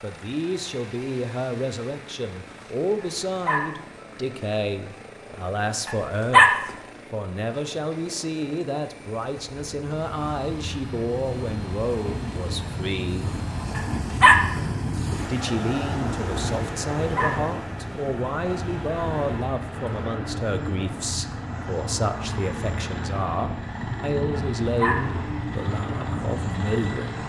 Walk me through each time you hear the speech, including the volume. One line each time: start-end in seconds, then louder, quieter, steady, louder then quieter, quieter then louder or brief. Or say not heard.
0.0-13.3 steady
15.2-27.2 steady.